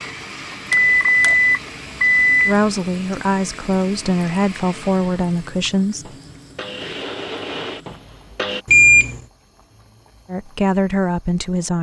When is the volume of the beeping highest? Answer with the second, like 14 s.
9 s.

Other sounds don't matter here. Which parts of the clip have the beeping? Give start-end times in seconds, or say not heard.
0.7-2.5, 8.7-9.2.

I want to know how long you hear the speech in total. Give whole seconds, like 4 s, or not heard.
5 s.